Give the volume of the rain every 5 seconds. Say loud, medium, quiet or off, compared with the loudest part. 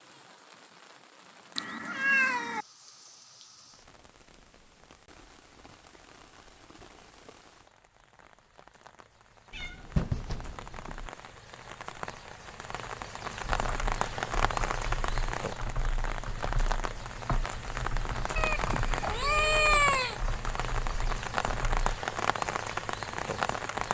quiet, quiet, loud, loud, loud.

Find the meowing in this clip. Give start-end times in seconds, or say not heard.
1.6-2.6, 9.5-11.1, 18.4-20.1.